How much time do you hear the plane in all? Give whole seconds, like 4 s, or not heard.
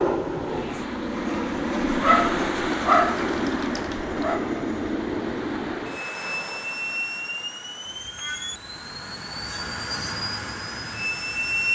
12 s.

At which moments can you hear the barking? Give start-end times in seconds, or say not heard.
1.9-4.4.